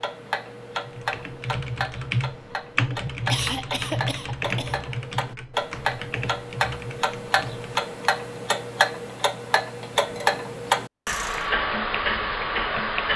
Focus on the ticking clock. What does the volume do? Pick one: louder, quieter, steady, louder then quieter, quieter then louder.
louder.